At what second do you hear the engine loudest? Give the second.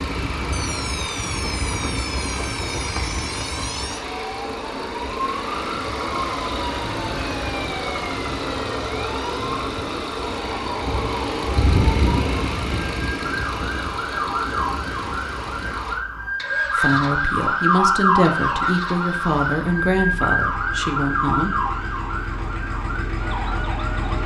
12 s.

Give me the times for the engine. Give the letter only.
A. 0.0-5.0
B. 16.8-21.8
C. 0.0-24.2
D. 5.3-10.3
C.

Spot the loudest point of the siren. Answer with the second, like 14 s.
18 s.